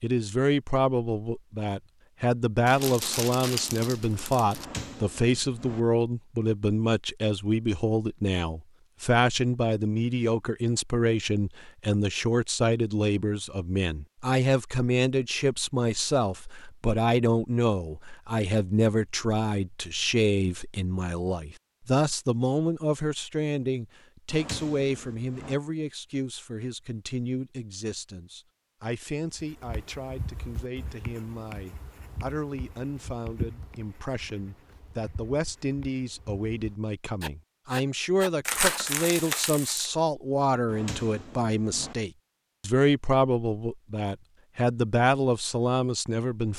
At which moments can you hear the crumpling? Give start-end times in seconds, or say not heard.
2.6-4.7, 38.5-39.9.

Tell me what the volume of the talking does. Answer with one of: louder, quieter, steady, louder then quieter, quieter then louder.
quieter then louder.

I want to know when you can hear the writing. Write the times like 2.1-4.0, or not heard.
29.4-38.8.